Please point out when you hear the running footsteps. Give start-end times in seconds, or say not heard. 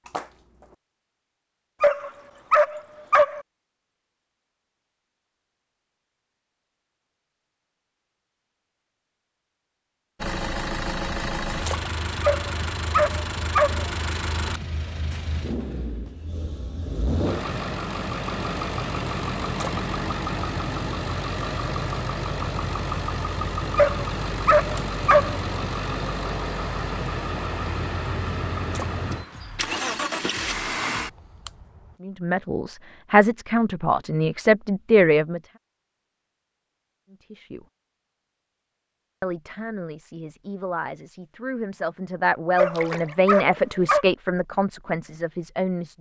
not heard.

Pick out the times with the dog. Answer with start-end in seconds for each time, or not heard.
1.8-3.4, 12.2-13.8, 23.8-25.4, 42.5-44.0.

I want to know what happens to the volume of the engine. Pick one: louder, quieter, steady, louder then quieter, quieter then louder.
steady.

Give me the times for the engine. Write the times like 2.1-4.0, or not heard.
10.2-31.9.